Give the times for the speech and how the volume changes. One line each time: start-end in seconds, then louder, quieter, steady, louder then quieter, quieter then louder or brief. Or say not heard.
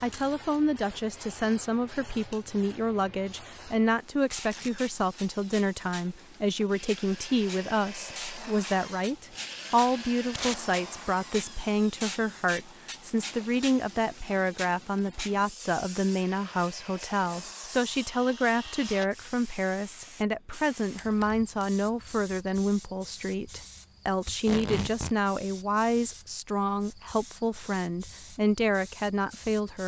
0.0-29.8 steady.